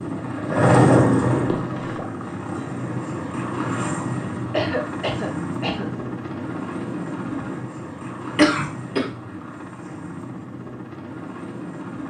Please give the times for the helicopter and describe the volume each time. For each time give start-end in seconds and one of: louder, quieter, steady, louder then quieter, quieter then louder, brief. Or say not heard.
0.0-12.0 quieter.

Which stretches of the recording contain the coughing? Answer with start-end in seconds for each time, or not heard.
1.4-2.0, 4.5-5.9, 8.3-9.1.